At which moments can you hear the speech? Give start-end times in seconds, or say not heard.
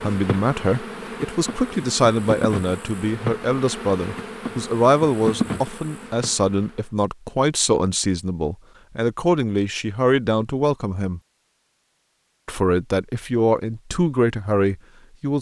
0.0-11.2, 12.4-15.3.